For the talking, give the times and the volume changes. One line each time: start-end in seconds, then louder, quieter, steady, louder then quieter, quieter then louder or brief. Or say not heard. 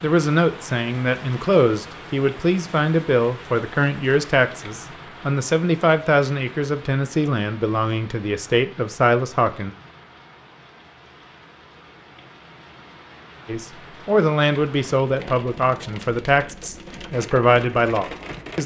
0.0-9.7 steady
13.4-18.6 quieter then louder.